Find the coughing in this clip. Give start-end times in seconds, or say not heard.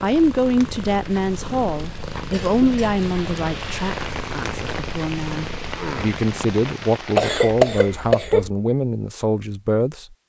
2.3-3.0, 7.2-8.5.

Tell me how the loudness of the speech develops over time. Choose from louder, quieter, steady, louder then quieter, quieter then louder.
quieter then louder.